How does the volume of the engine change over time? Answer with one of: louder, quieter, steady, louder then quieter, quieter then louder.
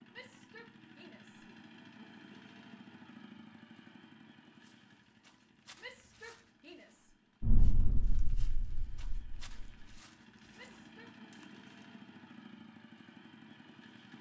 quieter then louder.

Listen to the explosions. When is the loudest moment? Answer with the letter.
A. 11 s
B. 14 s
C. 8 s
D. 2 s
C.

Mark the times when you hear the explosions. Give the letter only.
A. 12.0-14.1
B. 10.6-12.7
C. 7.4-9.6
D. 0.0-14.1
C.